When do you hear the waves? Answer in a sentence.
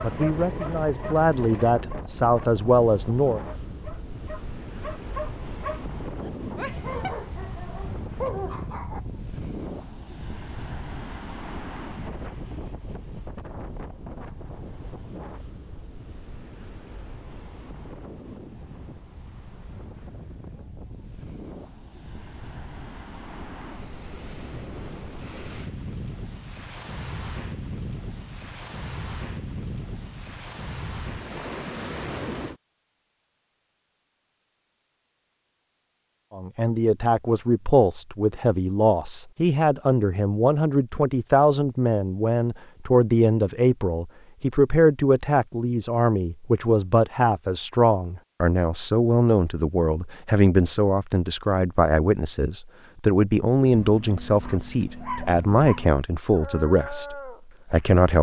The waves can be heard from 0.0 to 32.6 s.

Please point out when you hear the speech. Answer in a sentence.
The speech can be heard from 0.0 to 3.4 s and from 36.4 to 58.1 s.